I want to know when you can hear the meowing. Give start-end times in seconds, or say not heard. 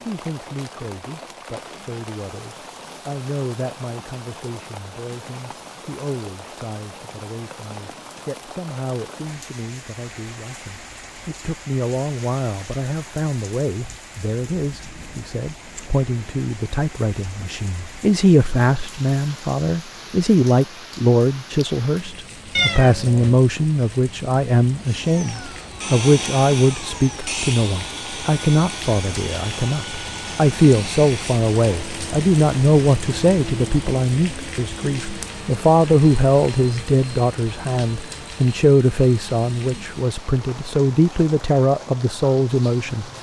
22.6-23.4.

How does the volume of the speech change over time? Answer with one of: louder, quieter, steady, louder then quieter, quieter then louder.
louder.